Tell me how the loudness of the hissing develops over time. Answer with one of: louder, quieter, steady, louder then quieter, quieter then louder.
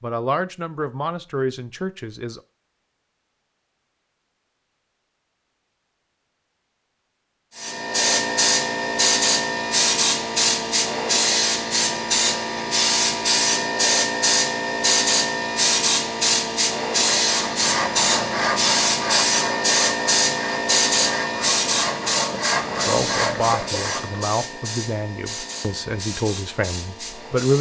quieter.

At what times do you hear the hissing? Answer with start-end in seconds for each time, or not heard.
7.5-27.5.